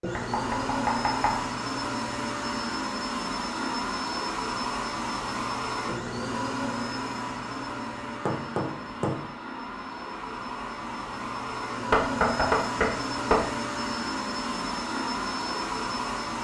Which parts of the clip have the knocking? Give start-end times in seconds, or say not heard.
0.1-1.4, 8.2-9.2, 11.9-13.4.